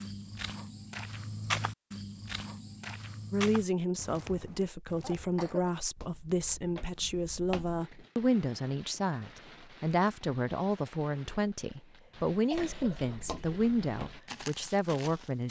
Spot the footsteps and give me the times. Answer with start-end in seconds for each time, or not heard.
0.0-7.8, 12.5-15.4.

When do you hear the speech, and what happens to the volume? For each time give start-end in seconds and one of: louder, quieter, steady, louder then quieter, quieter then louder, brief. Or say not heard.
3.3-15.4 steady.